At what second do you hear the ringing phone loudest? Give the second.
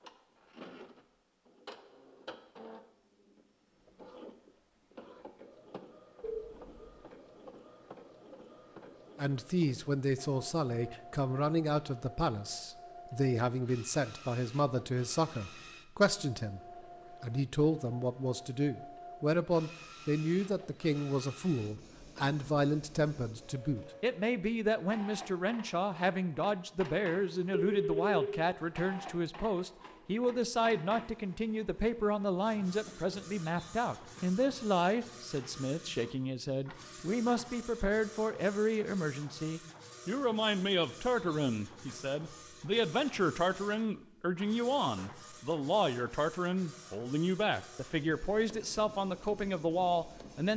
28 s.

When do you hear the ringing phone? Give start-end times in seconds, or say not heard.
6.2-7.1, 27.5-28.4.